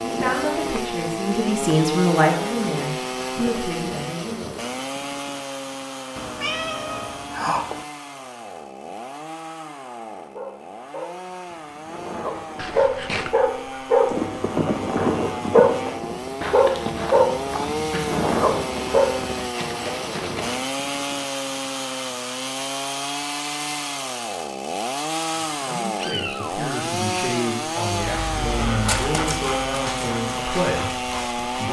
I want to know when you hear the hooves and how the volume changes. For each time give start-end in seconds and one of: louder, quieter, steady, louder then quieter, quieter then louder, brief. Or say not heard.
14.1-20.6 quieter.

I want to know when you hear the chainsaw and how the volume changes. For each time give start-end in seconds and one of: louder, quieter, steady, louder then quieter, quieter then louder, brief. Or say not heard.
0.0-31.6 quieter then louder.